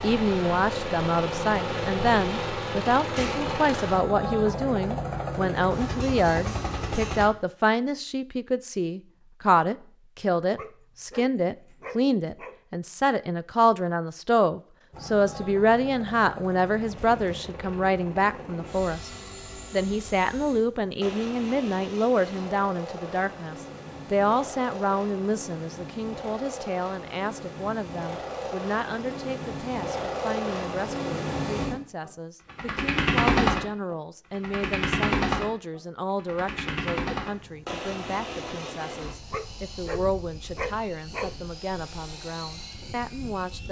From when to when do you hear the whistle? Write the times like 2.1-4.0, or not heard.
not heard.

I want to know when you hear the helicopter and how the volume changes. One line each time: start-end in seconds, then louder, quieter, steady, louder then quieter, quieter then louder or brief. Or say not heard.
0.0-7.2 steady
14.9-43.6 louder then quieter.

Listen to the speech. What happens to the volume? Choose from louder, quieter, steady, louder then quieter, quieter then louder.
quieter.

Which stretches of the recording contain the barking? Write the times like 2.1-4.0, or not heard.
10.6-12.6, 39.3-41.4.